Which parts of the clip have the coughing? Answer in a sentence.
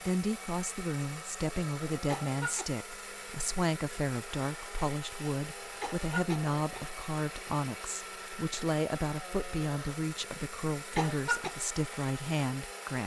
You can hear the coughing from 2.1 to 2.6 s, from 5.8 to 6.9 s and from 10.9 to 11.5 s.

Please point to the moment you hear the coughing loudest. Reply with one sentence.
The loudest moment of the coughing is at 11 seconds.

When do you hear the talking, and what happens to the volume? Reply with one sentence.
You can hear the talking from 0.1 to 13.0 s, at a steady volume.